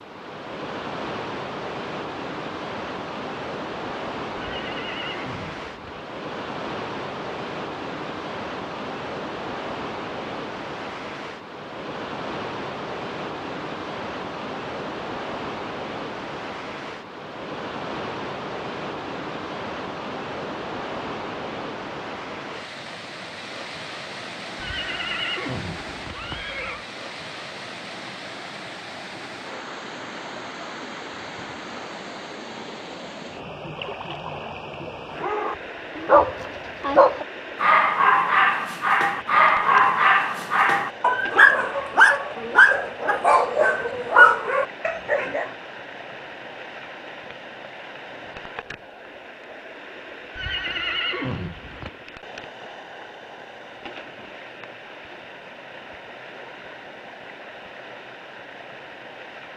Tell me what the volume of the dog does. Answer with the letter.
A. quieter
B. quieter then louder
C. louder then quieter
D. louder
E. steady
E.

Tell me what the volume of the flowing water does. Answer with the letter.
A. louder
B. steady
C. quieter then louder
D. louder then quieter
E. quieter
E.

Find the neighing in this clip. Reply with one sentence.
The neighing can be heard from 4.3 to 6.0 s, from 24.6 to 26.9 s and from 50.4 to 51.9 s.